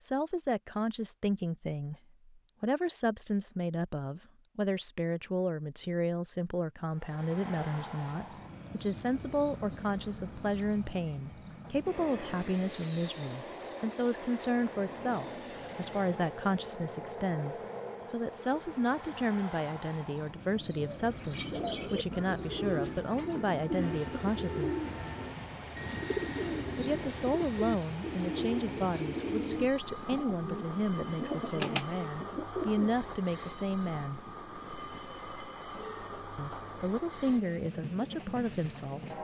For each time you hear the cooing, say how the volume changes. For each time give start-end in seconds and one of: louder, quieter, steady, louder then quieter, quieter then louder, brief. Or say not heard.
20.8-32.9 steady.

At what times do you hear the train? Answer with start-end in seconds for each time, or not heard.
6.9-39.2.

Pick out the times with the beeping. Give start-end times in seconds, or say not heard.
not heard.